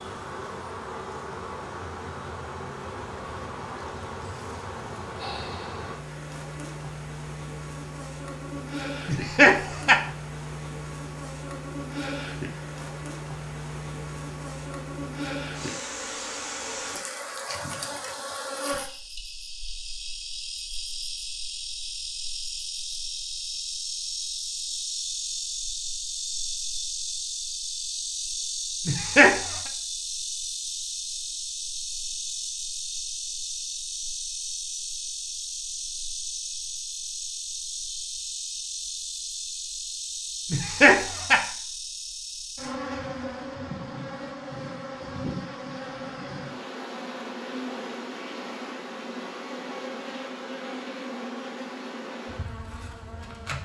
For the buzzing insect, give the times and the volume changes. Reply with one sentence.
You can hear the buzzing insect from 0.0 to 53.6 s, at a steady volume.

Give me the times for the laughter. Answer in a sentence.
You can hear the laughter from 9.1 to 10.0 s, from 28.9 to 29.6 s and from 40.5 to 41.4 s.